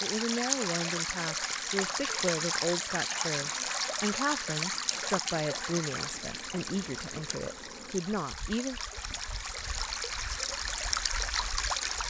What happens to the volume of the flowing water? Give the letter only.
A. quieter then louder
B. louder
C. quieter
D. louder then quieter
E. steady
A.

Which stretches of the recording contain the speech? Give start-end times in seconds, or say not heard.
0.0-8.8.